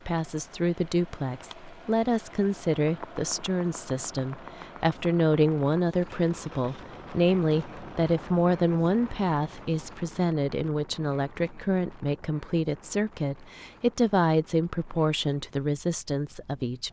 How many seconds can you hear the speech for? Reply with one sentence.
You can hear the speech for 17 seconds altogether.